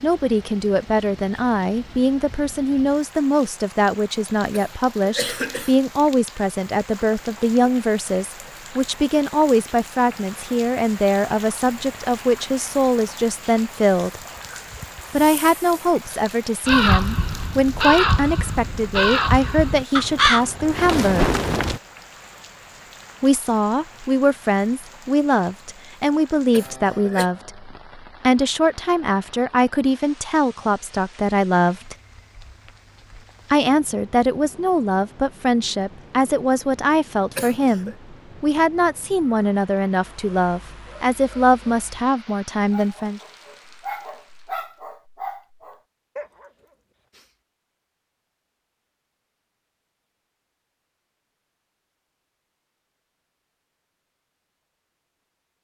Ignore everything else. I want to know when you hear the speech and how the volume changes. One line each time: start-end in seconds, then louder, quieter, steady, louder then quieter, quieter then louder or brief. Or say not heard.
0.0-14.2 steady
15.1-21.2 steady
23.2-31.9 steady
33.5-43.2 steady.